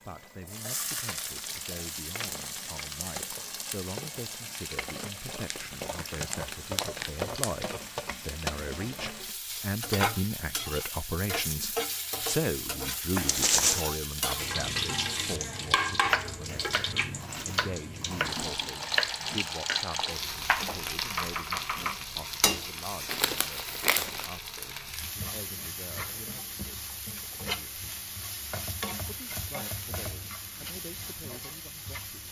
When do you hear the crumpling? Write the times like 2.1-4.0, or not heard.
5.5-7.7, 13.2-13.8, 23.1-24.3.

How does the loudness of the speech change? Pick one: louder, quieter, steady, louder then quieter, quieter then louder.
louder then quieter.